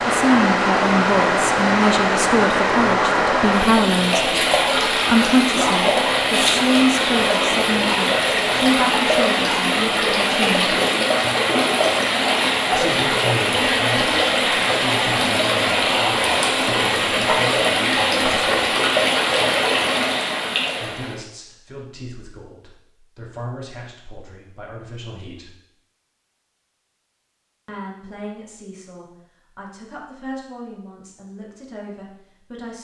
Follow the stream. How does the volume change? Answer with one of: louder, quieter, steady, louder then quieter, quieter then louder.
steady.